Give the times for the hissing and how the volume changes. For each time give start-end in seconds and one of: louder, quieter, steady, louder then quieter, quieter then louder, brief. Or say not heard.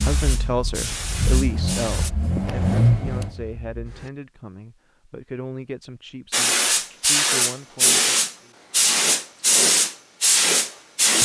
0.0-2.1 brief
6.3-11.2 steady.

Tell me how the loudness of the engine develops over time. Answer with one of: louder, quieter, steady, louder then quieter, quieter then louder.
louder then quieter.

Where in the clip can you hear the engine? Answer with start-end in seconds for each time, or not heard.
0.0-4.1.